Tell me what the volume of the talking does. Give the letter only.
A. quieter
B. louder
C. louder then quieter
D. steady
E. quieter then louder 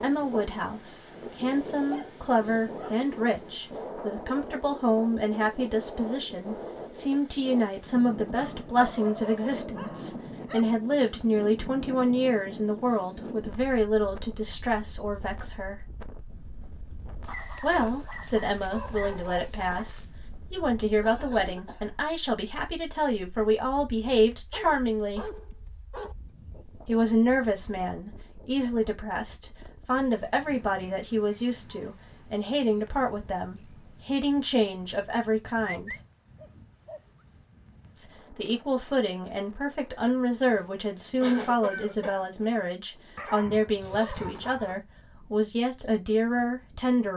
D.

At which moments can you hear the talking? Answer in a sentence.
The talking can be heard from 0.0 to 15.8 s, from 17.6 to 25.3 s, from 26.9 to 36.0 s and from 38.0 to 47.1 s.